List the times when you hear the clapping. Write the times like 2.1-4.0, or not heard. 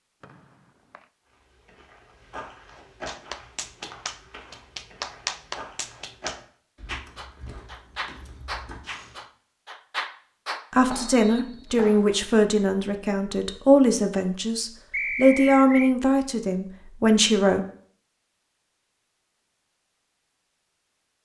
3.0-12.2.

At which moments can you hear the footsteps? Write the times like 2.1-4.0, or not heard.
1.2-9.2.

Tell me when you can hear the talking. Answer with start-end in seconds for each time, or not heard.
10.7-17.6.